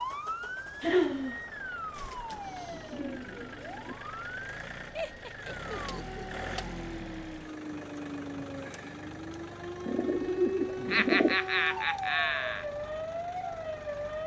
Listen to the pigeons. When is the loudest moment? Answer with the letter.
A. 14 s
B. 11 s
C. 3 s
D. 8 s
B.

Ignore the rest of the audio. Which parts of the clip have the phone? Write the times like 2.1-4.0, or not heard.
not heard.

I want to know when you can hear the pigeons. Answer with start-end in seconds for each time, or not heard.
1.9-4.0, 9.8-11.4.